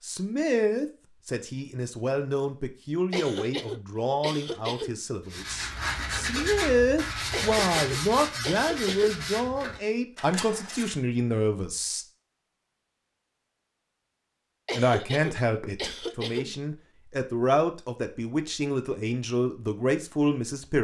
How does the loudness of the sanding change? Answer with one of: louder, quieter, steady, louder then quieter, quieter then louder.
quieter.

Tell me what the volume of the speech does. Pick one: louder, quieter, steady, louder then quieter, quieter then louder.
steady.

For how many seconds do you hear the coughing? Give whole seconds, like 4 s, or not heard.
6 s.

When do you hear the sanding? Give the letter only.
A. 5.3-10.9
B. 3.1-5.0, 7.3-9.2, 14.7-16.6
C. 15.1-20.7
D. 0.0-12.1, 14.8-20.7
A.